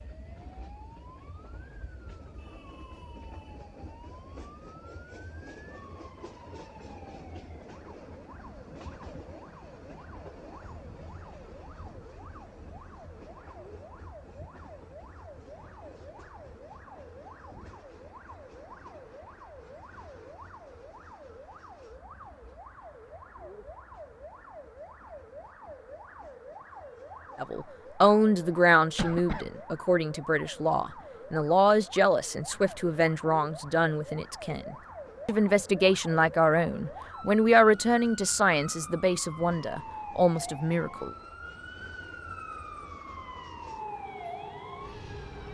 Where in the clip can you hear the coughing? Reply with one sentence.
The coughing can be heard from 28.9 to 29.6 s.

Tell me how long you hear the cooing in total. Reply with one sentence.
You can't hear the cooing here.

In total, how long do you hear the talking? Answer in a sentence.
You can hear the talking for 14 seconds altogether.